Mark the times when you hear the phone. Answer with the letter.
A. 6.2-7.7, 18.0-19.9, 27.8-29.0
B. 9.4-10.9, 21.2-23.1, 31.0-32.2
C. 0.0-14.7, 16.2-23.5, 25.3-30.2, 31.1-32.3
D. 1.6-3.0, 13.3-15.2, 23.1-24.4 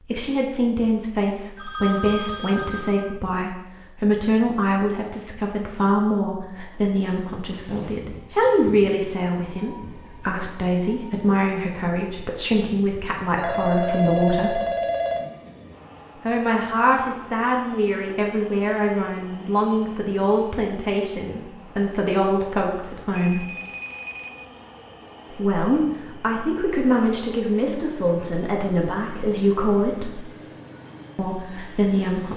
D.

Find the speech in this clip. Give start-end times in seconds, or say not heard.
0.0-14.7, 16.2-23.5, 25.3-30.2, 31.1-32.3.